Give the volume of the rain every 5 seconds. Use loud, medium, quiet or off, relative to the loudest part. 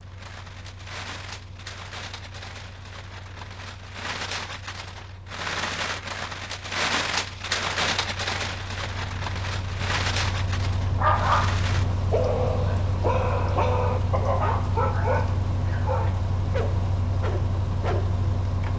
medium, loud, medium, quiet.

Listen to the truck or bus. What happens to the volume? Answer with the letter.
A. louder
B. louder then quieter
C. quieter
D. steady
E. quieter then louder
A.